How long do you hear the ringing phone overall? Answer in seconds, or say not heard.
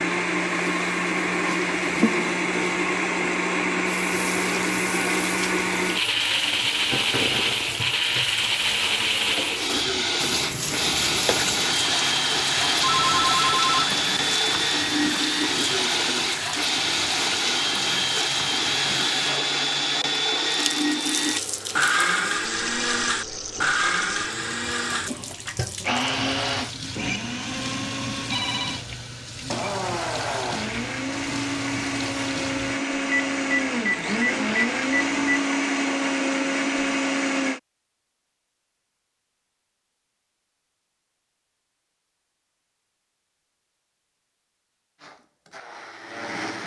4 s.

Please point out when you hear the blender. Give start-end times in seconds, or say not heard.
0.0-37.6, 45.0-46.6.